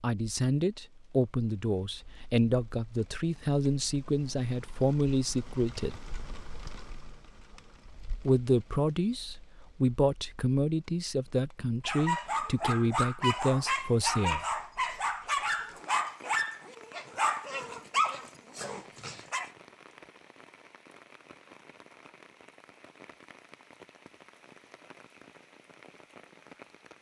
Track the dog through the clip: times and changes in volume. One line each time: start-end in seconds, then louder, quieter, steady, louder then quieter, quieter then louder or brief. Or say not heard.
11.8-19.5 steady.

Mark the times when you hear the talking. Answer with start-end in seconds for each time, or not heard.
0.0-6.0, 8.2-14.4.